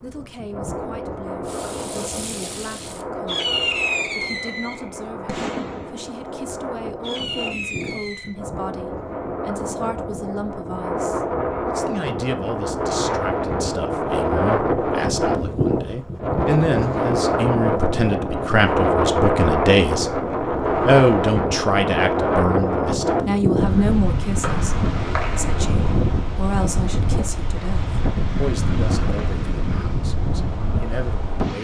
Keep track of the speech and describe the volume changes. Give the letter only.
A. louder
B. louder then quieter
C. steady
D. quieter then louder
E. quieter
B.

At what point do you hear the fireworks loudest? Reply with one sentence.
The loudest moment of the fireworks is at 4 seconds.